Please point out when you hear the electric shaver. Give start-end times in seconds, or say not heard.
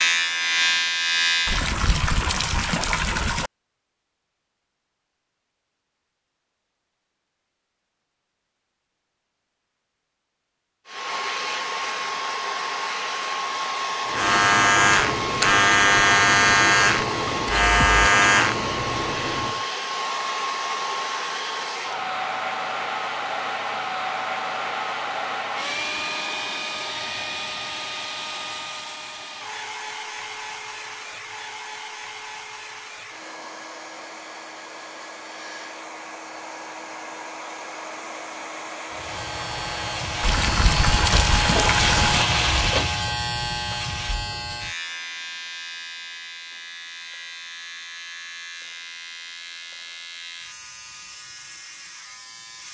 0.0-1.7, 14.1-19.6, 38.9-52.6.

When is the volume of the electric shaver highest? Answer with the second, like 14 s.
16 s.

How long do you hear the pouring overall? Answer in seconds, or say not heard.
4 s.